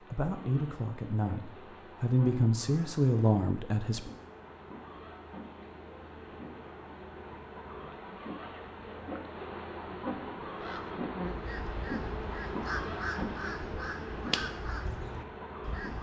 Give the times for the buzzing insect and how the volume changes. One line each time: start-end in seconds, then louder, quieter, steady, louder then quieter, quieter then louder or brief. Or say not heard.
0.0-15.9 louder.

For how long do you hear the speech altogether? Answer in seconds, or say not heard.
4 s.